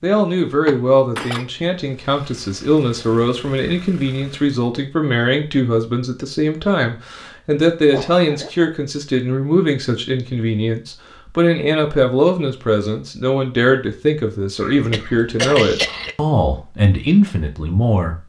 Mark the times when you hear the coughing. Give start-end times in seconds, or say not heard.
0.7-1.4, 7.9-8.5, 14.6-16.1.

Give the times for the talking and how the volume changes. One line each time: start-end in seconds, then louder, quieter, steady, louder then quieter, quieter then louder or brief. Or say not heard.
0.0-18.2 steady.